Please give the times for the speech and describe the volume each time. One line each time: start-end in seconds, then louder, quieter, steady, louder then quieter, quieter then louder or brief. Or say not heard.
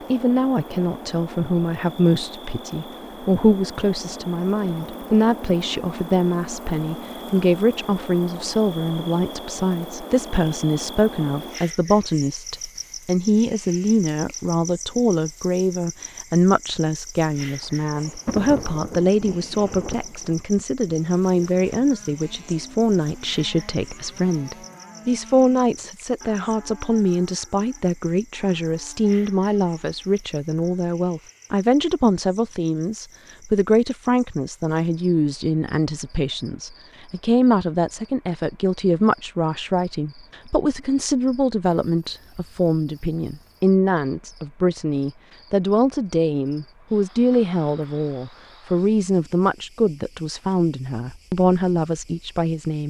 0.1-52.8 steady.